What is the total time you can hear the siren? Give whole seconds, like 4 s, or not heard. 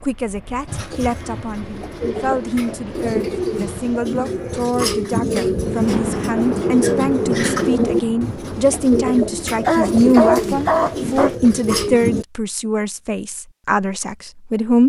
not heard.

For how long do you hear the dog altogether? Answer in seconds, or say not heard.
2 s.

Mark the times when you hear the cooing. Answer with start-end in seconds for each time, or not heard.
0.7-12.2.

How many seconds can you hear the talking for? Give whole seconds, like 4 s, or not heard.
15 s.